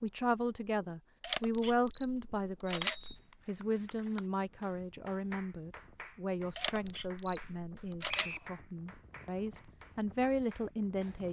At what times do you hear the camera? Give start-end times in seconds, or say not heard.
1.2-3.1, 6.5-8.2.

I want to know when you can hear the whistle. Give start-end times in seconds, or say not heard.
2.7-3.2, 8.1-8.5.